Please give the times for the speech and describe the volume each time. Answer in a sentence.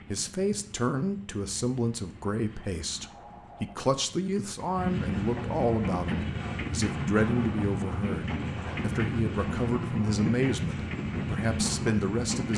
You can hear the speech from 0.1 to 12.5 s, at a steady volume.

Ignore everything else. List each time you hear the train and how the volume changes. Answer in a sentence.
The train can be heard from 0.0 to 12.5 s, getting louder.